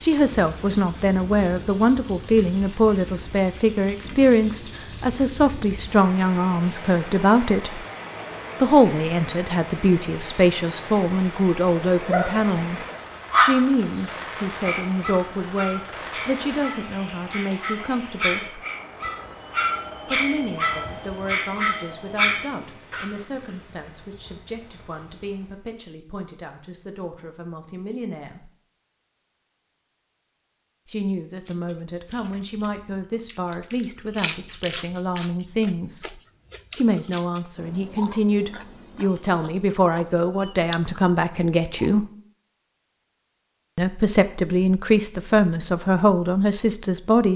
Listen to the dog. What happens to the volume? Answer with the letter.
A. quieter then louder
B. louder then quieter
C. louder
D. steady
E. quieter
A.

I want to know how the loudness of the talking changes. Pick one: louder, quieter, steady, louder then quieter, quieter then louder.
quieter then louder.